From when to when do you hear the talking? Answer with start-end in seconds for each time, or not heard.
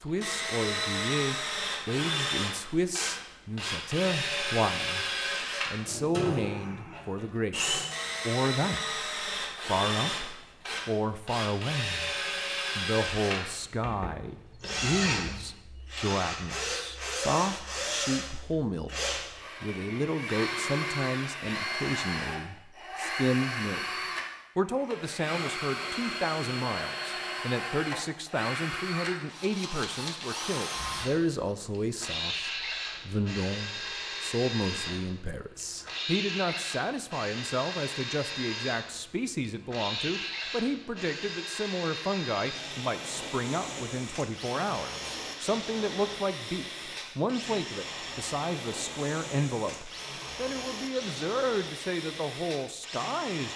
0.0-5.0, 5.7-9.0, 9.7-12.2, 12.8-23.8, 24.6-53.5.